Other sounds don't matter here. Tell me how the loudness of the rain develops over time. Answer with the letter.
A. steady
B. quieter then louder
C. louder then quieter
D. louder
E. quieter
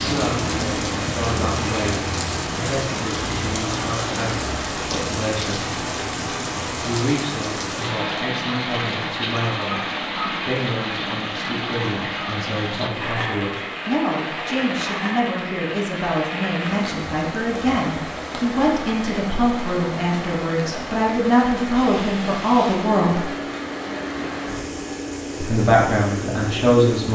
E.